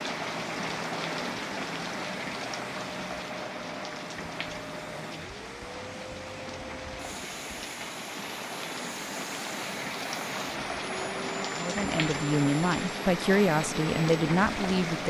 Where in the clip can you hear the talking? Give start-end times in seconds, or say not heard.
11.6-15.0.